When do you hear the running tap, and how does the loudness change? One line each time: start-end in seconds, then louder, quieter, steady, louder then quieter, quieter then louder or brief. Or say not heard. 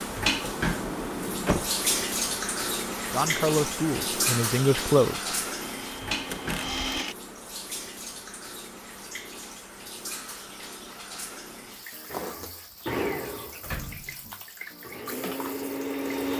0.0-16.3 quieter.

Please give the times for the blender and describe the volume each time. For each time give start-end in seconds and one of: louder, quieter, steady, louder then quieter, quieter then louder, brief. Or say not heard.
5.6-7.2 brief
12.1-16.3 quieter then louder.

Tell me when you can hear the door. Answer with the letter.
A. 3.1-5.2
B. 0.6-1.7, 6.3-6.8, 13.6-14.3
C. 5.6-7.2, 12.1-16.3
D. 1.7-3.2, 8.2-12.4
B.